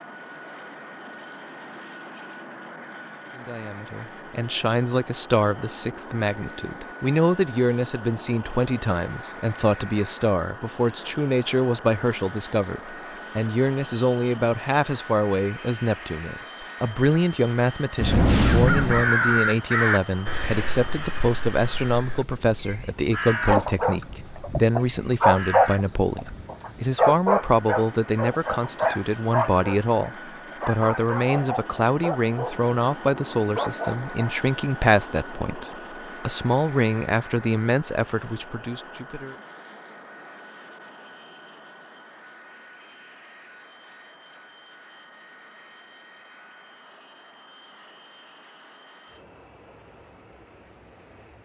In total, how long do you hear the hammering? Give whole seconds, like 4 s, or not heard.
not heard.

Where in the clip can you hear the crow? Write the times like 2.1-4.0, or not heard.
17.9-26.6.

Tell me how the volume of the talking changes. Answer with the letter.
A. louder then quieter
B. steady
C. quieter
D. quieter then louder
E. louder
B.